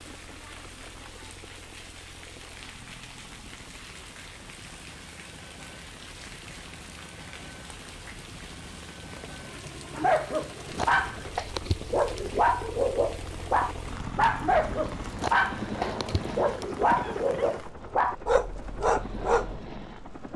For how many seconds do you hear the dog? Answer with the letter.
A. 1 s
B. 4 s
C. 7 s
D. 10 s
D.